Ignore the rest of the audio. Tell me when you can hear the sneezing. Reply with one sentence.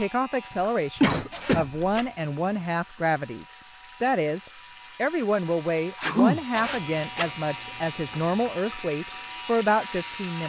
You can hear the sneezing from 1.0 to 1.9 s and from 6.0 to 6.4 s.